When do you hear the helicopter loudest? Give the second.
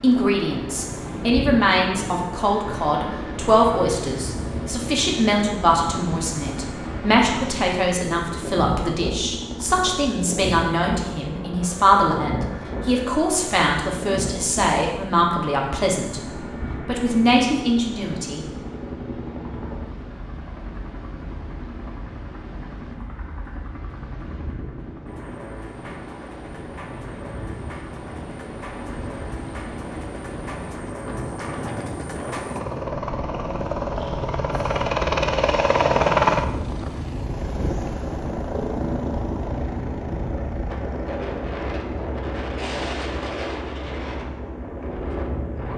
36 s.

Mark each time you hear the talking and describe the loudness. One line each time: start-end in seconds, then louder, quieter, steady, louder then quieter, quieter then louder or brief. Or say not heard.
0.0-16.2 steady
16.9-18.4 brief.